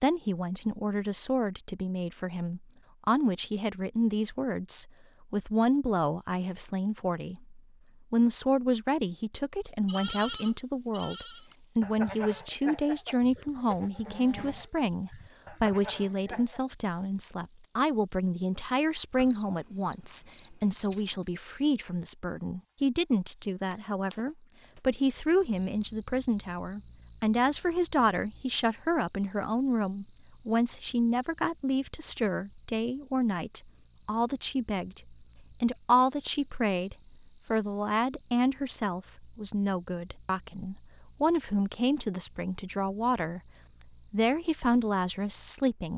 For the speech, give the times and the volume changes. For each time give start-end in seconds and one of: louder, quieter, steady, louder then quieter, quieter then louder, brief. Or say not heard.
0.0-43.4 steady
44.1-45.9 brief.